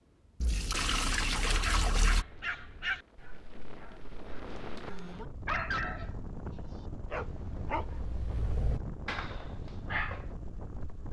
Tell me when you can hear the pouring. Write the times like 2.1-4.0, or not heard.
0.4-2.2.